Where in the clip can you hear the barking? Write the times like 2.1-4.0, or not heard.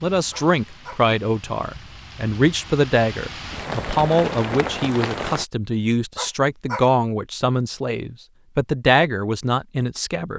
0.3-1.0, 6.2-6.8.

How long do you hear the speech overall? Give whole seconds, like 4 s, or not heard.
10 s.